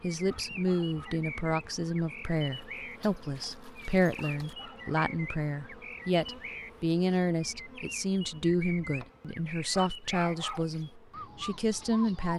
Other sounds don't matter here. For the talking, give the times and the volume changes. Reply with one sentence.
The talking can be heard from 0.0 to 12.3 s, at a steady volume.